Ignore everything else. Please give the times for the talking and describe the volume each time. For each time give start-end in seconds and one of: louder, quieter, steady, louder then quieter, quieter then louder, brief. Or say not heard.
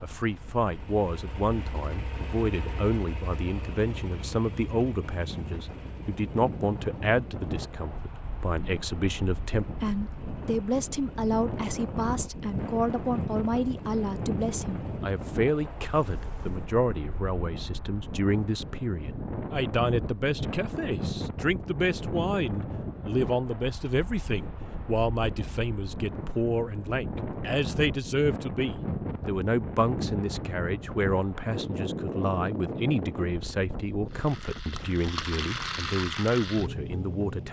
0.0-37.4 steady.